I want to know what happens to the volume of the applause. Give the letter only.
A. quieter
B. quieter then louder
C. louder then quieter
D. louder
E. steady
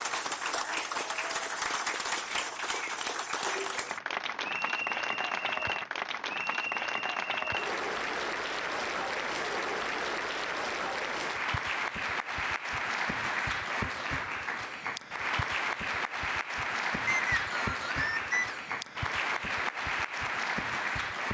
E.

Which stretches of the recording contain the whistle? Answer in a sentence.
You can hear the whistle from 17.1 to 18.6 s.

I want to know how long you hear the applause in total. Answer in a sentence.
You can hear the applause for 21 seconds altogether.